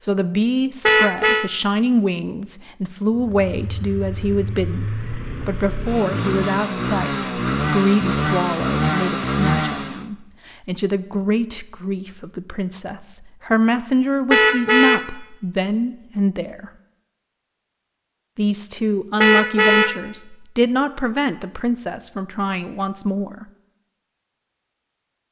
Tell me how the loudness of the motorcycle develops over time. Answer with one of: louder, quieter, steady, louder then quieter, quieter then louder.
louder.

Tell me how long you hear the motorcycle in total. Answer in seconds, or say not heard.
7 s.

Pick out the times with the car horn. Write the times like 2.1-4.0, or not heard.
0.8-1.5, 14.3-15.1, 19.2-20.1.